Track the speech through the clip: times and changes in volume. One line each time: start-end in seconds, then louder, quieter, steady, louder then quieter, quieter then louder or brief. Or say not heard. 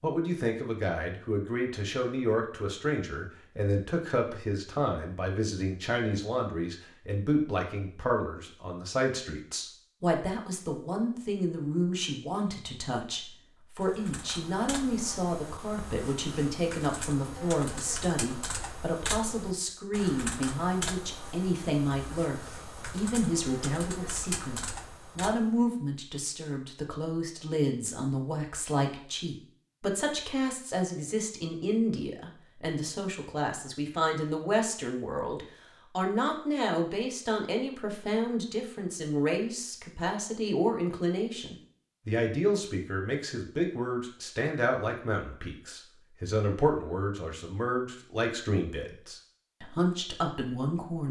0.0-51.0 steady.